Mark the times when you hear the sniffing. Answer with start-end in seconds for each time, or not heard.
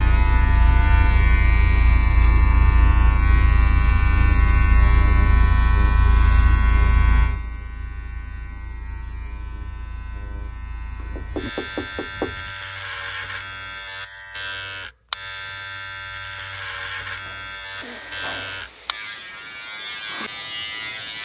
17.2-19.1.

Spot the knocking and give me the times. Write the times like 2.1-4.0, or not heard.
11.1-12.6.